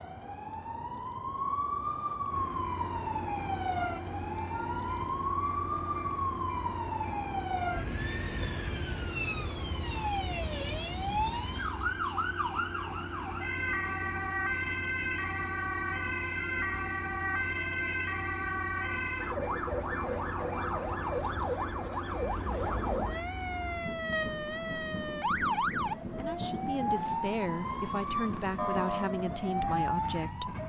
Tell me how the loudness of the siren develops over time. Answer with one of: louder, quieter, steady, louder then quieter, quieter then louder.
steady.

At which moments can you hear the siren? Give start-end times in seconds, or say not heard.
0.0-30.6.